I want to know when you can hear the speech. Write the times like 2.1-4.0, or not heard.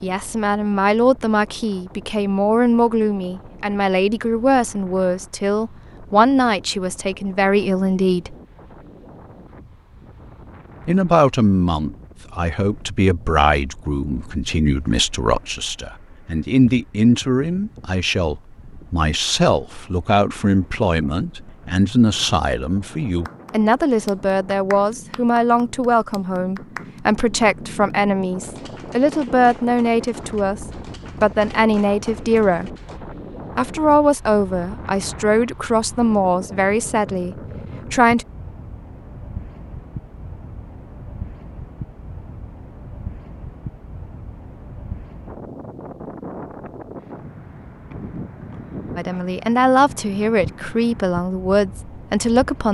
0.0-8.3, 10.8-32.8, 33.5-38.2, 49.0-52.6.